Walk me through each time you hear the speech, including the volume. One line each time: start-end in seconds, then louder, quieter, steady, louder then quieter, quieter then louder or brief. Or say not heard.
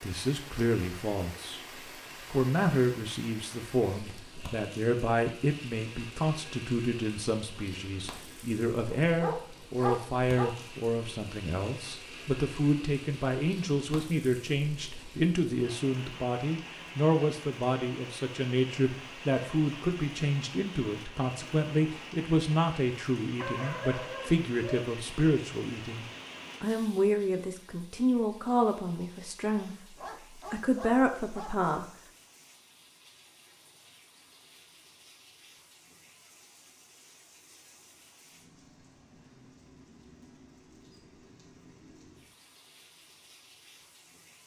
0.0-31.9 steady.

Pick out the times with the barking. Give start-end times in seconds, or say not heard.
8.9-10.5, 23.4-24.9, 29.9-31.7.